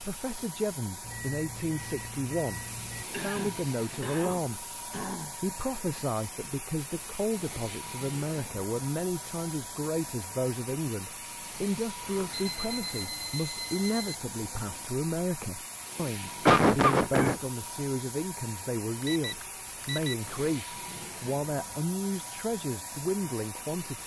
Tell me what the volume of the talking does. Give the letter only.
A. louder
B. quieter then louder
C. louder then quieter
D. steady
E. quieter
D.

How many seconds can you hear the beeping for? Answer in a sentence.
The beeping can be heard for 5 seconds in total.